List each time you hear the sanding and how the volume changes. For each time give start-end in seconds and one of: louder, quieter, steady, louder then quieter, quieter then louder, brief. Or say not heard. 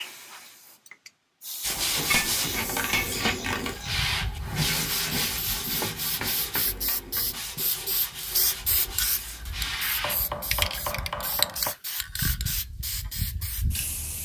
1.6-10.2 quieter.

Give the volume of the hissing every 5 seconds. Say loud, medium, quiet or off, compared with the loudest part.
medium, loud, loud.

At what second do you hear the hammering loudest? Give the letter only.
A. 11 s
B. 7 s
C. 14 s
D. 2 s
D.